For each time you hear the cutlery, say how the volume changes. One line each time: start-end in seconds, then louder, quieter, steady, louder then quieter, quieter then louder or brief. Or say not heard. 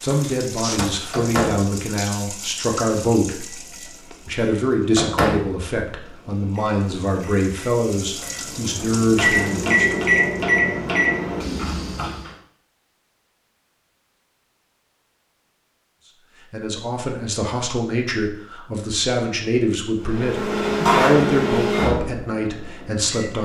not heard.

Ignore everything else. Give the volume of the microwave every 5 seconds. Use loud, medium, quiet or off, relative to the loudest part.
medium, loud, loud, off, loud.